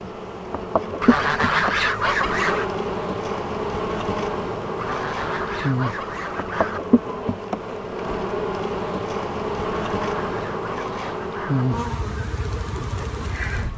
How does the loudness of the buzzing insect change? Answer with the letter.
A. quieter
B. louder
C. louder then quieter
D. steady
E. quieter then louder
D.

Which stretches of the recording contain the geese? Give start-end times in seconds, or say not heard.
1.0-2.7, 4.8-6.8, 9.8-11.7.